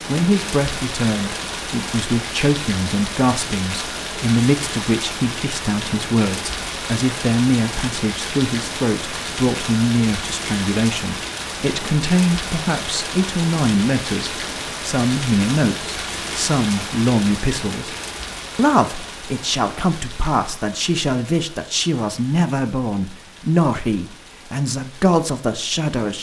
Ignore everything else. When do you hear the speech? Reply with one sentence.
The speech can be heard from 0.1 to 17.9 s and from 18.6 to 26.1 s.